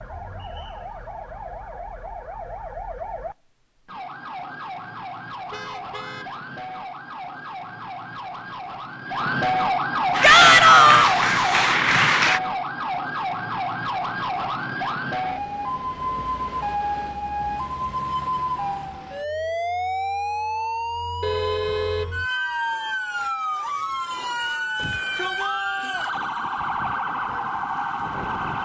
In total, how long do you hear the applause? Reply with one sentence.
You can hear the applause for 2 seconds altogether.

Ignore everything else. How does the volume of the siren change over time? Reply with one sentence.
The loudness of the siren goes up.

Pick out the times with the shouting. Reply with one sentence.
The shouting can be heard from 10.2 to 11.2 s and from 24.8 to 26.1 s.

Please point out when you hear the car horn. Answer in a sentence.
You can hear the car horn from 5.5 to 6.4 s and from 21.2 to 22.2 s.